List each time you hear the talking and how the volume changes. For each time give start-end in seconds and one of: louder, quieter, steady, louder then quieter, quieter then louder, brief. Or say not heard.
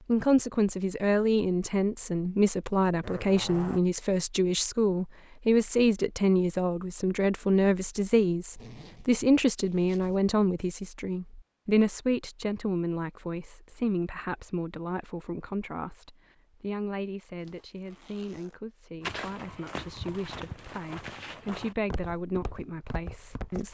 0.1-23.6 quieter.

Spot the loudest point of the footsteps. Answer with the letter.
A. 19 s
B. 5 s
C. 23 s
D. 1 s
A.